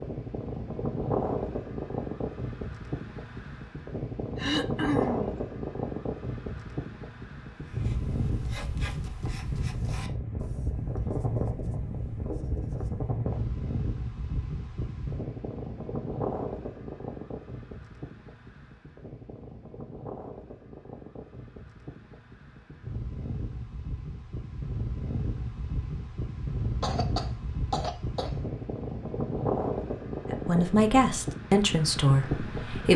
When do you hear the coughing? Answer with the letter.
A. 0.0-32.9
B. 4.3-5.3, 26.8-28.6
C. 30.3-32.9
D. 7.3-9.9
B.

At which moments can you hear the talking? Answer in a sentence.
You can hear the talking from 30.3 to 32.9 s.